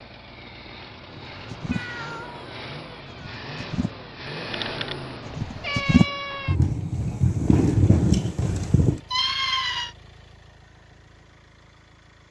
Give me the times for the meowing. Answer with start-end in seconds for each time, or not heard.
1.7-2.5, 4.5-6.5, 9.1-9.9.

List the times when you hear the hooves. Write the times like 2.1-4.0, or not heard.
1.1-9.0.